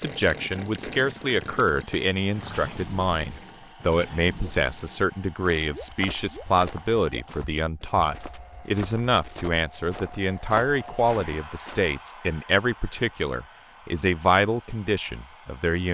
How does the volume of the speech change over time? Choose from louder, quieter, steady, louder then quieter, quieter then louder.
steady.